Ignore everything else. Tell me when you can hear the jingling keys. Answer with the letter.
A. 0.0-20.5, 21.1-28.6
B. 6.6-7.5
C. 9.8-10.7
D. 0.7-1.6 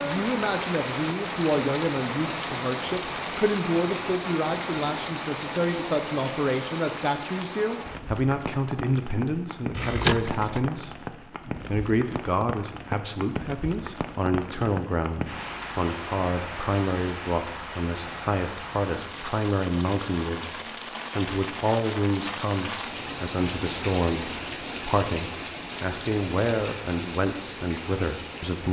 C.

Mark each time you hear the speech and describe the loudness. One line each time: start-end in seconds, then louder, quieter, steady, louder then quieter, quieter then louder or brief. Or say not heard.
0.0-20.5 steady
21.1-28.6 steady.